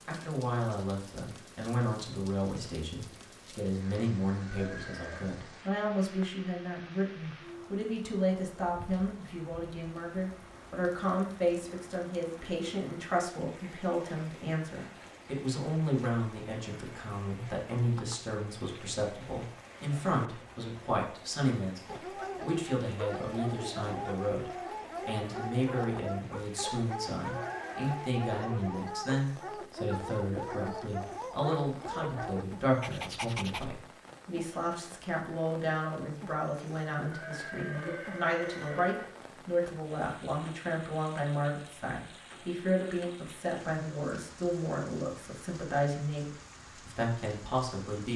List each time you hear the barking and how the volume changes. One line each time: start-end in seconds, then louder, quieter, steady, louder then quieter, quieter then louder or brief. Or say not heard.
21.9-33.6 steady.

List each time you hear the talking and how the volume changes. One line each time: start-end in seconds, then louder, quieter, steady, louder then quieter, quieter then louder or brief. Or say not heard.
0.1-48.1 steady.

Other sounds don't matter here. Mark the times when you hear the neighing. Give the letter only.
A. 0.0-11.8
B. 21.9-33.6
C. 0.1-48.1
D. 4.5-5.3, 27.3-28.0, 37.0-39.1
D.